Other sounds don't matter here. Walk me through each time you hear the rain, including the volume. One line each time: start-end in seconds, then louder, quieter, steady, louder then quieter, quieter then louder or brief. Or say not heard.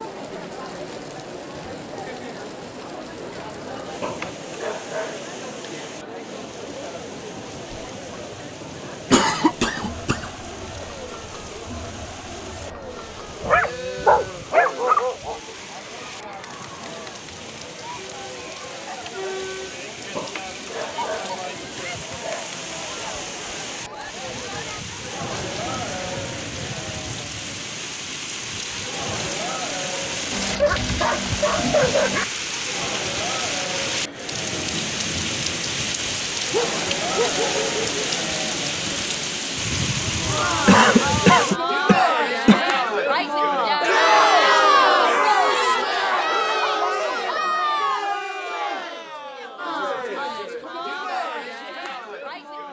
0.0-41.6 louder.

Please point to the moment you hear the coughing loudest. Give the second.
41 s.